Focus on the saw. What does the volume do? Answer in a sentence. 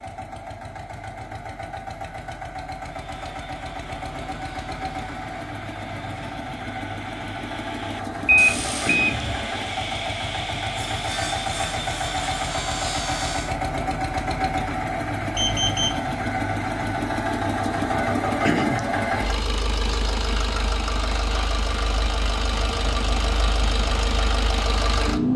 The volume of the saw goes up.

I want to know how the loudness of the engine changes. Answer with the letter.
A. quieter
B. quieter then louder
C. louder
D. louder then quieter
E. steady
C.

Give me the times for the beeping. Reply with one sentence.
The beeping can be heard from 8.2 to 9.4 s and from 15.3 to 16.0 s.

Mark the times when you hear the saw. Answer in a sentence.
The saw can be heard from 3.0 to 13.6 s.